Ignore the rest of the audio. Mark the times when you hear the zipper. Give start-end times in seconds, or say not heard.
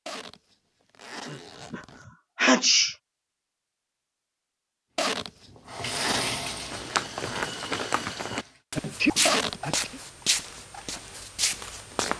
0.1-2.0, 5.0-6.4, 9.2-9.8.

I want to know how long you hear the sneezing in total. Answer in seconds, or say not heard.
3 s.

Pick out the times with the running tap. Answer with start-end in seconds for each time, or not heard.
5.2-8.6.